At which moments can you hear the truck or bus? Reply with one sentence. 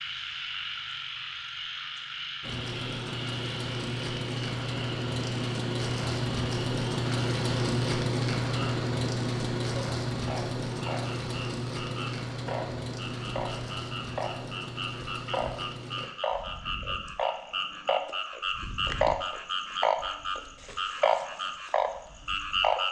The truck or bus can be heard from 2.4 to 16.1 s.